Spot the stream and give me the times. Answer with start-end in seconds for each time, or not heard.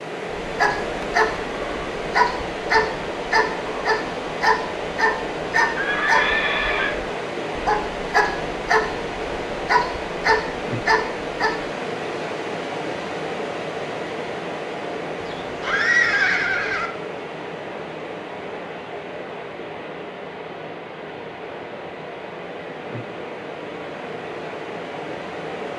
0.0-25.7.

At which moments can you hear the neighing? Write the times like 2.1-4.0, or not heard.
5.8-7.0, 15.2-16.9.